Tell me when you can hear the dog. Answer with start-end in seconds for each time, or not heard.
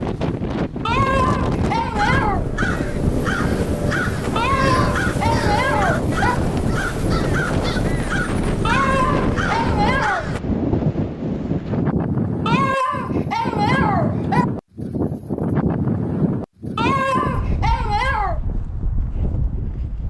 0.8-2.4, 4.3-6.3, 8.7-10.3, 12.4-14.4, 16.8-18.4.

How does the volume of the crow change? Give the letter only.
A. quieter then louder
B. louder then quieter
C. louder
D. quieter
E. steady
E.